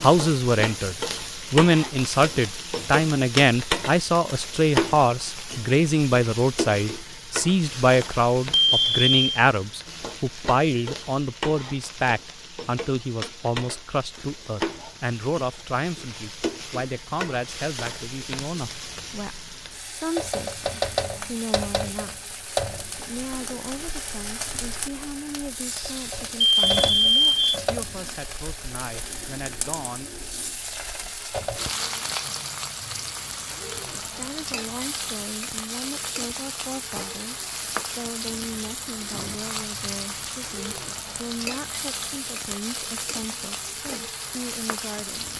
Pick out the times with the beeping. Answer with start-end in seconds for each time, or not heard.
8.6-9.2, 26.4-27.6.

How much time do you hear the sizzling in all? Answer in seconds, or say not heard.
45 s.